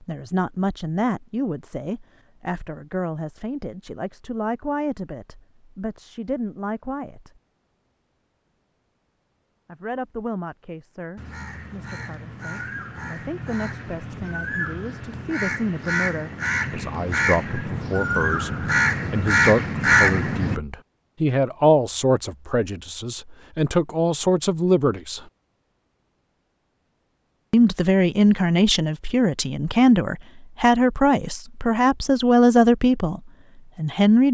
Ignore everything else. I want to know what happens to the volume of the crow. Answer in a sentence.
The loudness of the crow goes up.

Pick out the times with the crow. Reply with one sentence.
You can hear the crow from 11.2 to 20.6 s.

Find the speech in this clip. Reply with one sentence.
The speech can be heard from 0.0 to 7.4 s, from 9.7 to 25.2 s and from 27.5 to 34.2 s.